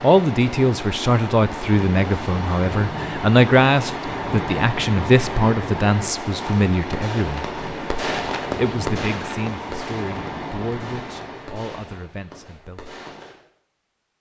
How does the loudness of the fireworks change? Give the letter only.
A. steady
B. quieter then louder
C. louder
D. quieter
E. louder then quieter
D.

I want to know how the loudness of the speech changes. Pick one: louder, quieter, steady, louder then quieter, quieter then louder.
quieter.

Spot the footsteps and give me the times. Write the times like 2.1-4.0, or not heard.
not heard.